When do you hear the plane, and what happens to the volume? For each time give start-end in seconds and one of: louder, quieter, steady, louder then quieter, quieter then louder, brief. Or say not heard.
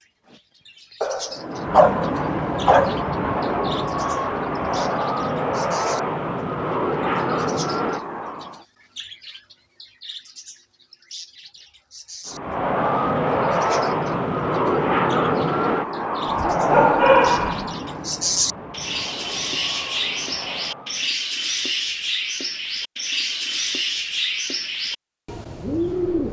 1.3-8.7 steady
12.2-21.1 quieter.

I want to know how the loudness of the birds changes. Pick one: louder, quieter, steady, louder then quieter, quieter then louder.
louder.